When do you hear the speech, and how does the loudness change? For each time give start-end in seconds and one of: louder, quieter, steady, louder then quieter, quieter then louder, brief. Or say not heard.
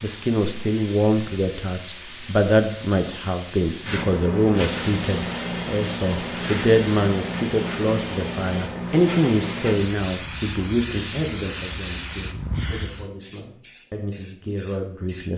0.0-15.3 quieter.